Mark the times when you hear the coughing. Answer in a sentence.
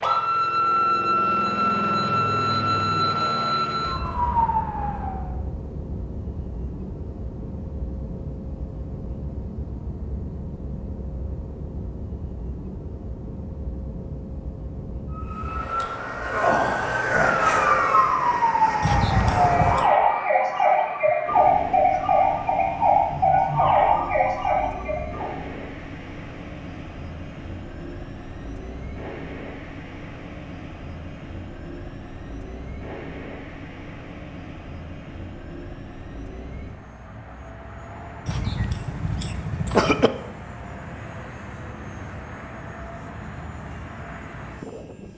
You can hear the coughing from 18.8 to 19.9 s and from 38.2 to 40.1 s.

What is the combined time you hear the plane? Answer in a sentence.
The plane can be heard for 45 seconds in total.